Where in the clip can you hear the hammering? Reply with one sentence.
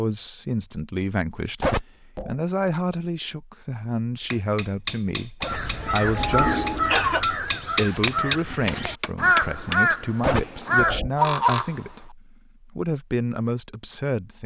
The hammering can be heard from 4.3 to 9.8 s.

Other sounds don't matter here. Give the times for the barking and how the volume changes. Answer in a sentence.
The barking can't be heard in this clip.